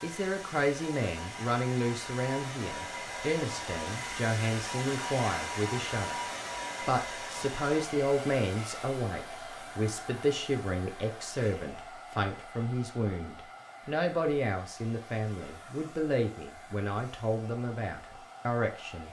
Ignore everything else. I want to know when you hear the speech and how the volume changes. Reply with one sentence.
You can hear the speech from 0.0 to 19.0 s, at a steady volume.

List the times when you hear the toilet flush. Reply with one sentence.
The toilet flush can't be heard in this clip.